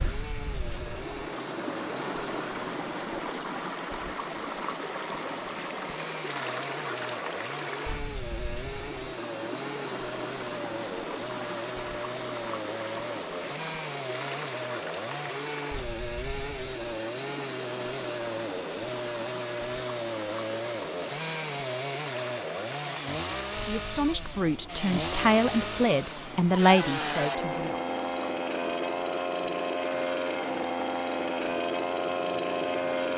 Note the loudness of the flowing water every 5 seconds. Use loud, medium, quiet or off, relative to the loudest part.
loud, loud, loud, medium, medium, medium, medium.